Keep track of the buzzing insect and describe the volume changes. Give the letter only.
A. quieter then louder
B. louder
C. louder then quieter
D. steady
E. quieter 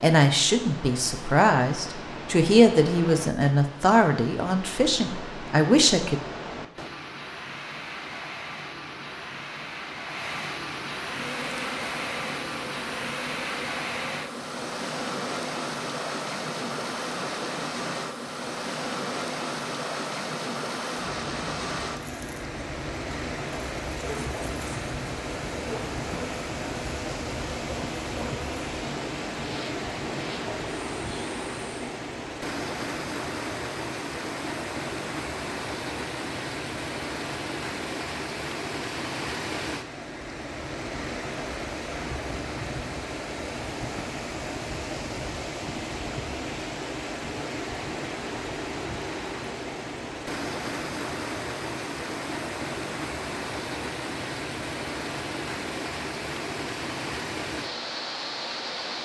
D.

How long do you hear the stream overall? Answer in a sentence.
The stream can be heard for 59 seconds in total.